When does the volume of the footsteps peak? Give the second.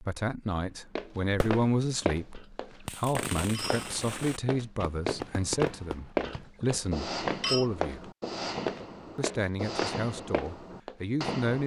6 s.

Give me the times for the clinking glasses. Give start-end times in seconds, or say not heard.
2.3-4.0, 6.2-7.7.